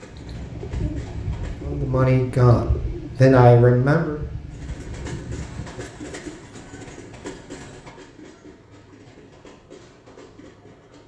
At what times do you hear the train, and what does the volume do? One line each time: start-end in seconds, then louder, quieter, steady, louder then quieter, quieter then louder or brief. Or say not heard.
0.0-1.7 brief
4.5-11.0 quieter.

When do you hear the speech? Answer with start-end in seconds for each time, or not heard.
1.6-4.2.